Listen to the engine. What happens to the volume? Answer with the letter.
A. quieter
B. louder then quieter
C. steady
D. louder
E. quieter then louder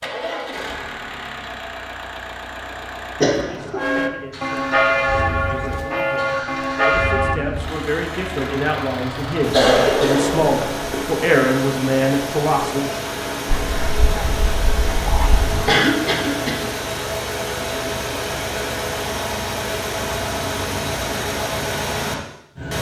D.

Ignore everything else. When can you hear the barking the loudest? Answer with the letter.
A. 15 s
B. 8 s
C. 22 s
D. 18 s
A.